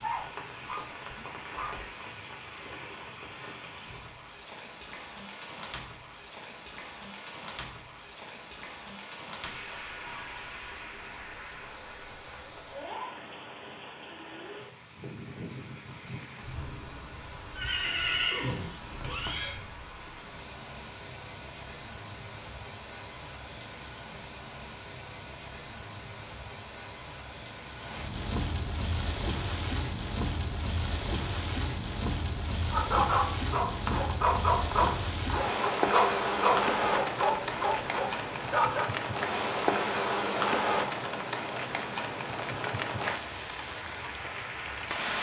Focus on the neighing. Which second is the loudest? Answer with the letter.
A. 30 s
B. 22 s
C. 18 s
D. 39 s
C.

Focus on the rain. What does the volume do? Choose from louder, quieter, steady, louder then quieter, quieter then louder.
louder.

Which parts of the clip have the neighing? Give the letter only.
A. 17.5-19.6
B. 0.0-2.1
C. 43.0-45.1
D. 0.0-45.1
A.